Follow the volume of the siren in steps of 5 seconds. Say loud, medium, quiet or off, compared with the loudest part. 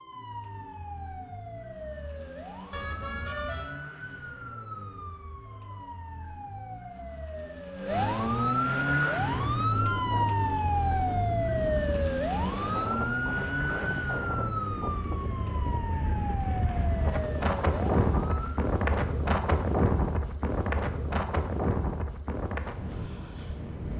quiet, loud, loud, medium, off.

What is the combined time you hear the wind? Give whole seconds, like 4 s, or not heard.
15 s.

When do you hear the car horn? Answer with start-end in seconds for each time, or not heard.
2.7-3.8.